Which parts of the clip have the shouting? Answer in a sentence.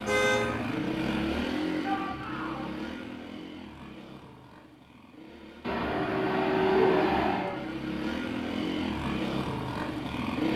You can hear the shouting from 1.8 to 2.7 s and from 6.7 to 7.7 s.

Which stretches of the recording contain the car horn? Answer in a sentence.
The car horn can be heard from 0.1 to 0.6 s and from 5.6 to 7.5 s.